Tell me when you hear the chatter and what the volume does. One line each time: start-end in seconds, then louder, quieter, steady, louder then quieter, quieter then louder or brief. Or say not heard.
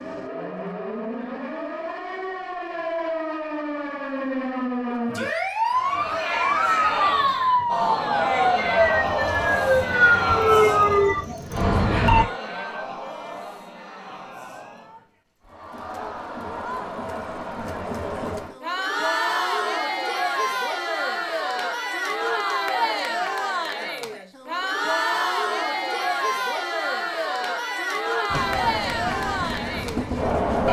5.7-30.6 quieter then louder.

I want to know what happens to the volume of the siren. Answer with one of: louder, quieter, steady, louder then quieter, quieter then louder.
louder.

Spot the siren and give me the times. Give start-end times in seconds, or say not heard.
0.0-12.2.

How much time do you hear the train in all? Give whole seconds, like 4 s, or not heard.
2 s.